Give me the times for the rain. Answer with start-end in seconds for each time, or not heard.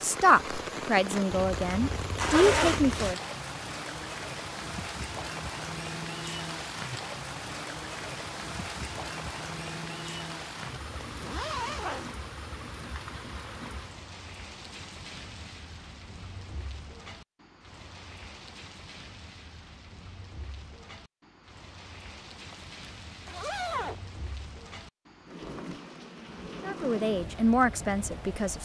0.0-28.6.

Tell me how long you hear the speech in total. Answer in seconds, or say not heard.
5 s.